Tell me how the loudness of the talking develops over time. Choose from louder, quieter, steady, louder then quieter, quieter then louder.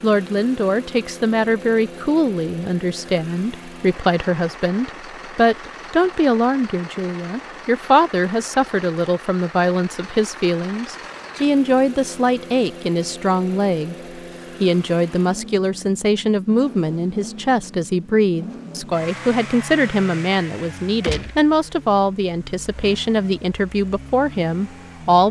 steady.